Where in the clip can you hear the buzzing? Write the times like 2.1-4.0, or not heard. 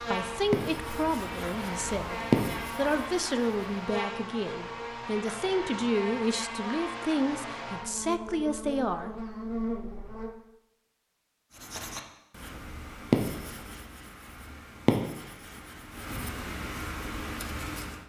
0.0-10.3.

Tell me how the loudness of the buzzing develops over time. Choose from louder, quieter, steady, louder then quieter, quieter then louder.
steady.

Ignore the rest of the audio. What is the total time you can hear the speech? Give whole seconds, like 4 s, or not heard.
9 s.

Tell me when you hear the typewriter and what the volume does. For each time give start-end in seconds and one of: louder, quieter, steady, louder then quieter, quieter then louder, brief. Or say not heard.
not heard.